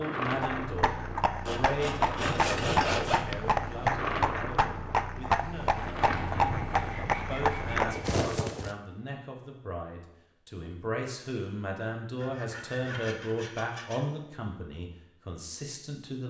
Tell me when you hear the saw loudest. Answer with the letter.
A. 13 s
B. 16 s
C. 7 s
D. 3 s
D.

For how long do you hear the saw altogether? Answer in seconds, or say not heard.
6 s.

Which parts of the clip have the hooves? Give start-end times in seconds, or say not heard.
0.3-8.8.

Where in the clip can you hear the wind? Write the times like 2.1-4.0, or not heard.
0.0-8.7.